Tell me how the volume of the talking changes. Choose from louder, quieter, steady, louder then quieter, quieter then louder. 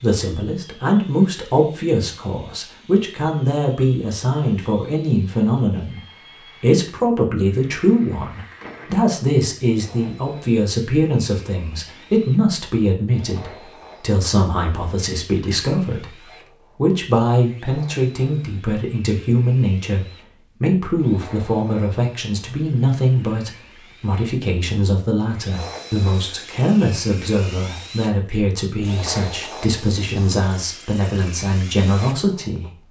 steady.